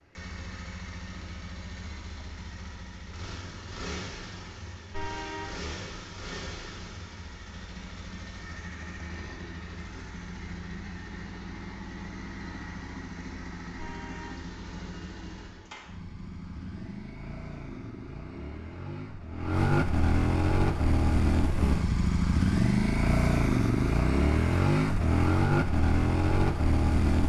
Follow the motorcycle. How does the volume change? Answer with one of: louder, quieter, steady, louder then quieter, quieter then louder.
louder.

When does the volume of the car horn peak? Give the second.
5 s.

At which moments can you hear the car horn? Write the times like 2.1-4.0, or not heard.
4.9-5.6, 13.8-14.4.